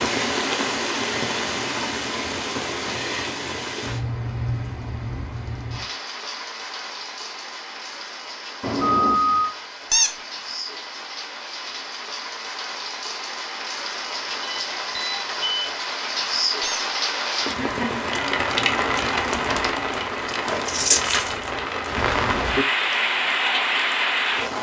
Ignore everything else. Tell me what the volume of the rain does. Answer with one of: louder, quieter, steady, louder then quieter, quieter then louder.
quieter then louder.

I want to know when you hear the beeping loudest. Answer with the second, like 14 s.
9 s.